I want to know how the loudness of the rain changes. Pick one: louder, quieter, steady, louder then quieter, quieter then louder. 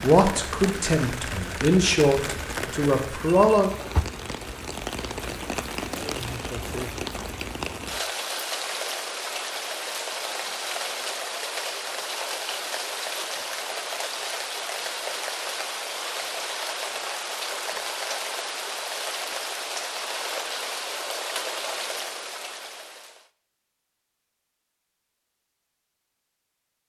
steady.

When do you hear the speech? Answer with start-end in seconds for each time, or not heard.
0.0-3.7.